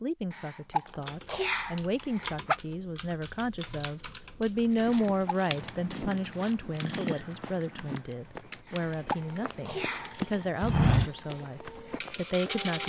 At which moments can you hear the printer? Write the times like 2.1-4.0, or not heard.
9.1-12.8.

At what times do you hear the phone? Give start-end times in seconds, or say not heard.
not heard.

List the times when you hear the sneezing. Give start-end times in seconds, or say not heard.
0.3-2.6, 4.8-5.5, 8.7-10.2.